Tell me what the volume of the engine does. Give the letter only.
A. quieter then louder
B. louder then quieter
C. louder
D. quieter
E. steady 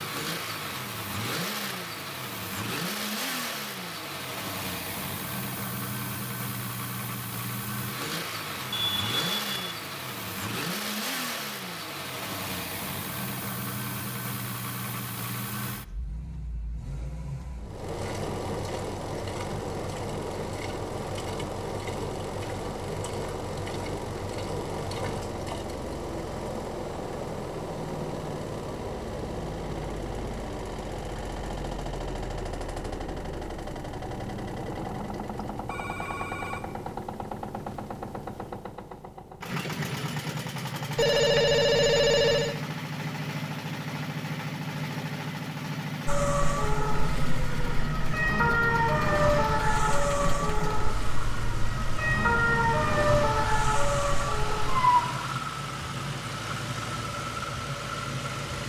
E.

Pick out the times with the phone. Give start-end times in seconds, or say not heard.
8.7-9.8, 35.6-36.9, 41.0-42.5.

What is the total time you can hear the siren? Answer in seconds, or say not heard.
9 s.